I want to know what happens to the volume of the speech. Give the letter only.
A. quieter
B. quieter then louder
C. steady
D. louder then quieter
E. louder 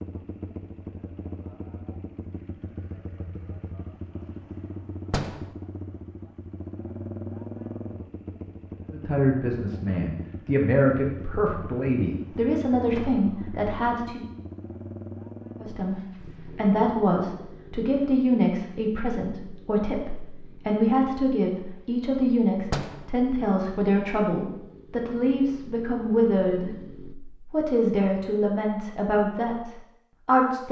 C.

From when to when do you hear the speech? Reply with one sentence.
You can hear the speech from 8.9 to 14.3 s and from 15.6 to 30.6 s.